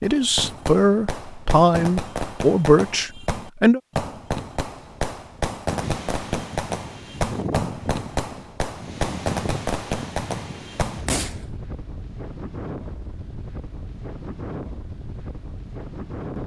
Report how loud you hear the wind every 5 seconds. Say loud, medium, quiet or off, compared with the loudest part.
off, loud, loud, loud.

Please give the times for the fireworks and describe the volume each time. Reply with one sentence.
You can hear the fireworks from 0.0 to 11.4 s, at a steady volume.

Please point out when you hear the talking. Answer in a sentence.
You can hear the talking from 0.0 to 3.8 s.